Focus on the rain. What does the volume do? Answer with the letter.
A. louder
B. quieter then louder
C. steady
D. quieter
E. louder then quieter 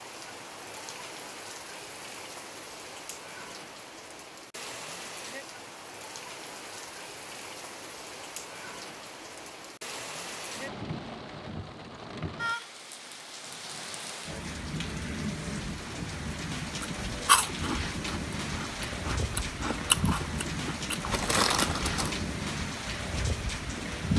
A.